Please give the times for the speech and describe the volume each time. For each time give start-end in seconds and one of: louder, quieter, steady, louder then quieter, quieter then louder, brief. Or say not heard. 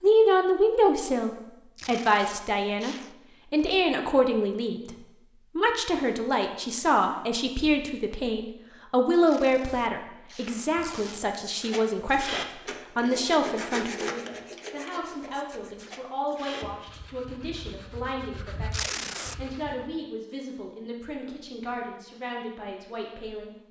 0.0-23.6 quieter.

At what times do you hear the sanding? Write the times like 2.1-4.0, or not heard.
11.4-19.9.